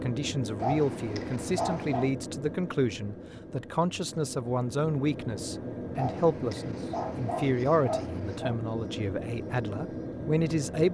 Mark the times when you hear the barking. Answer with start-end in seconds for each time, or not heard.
0.6-2.1, 6.0-8.6.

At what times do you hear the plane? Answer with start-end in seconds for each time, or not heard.
0.0-10.8.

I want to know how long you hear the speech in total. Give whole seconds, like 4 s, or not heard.
11 s.